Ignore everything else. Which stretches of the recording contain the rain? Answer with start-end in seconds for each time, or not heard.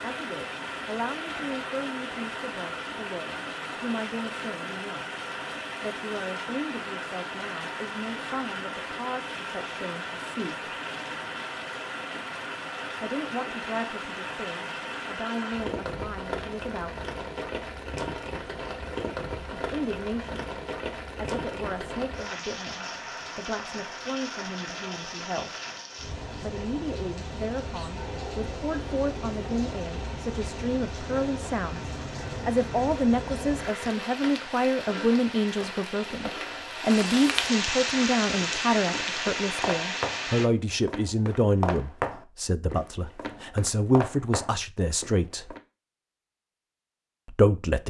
0.0-40.5.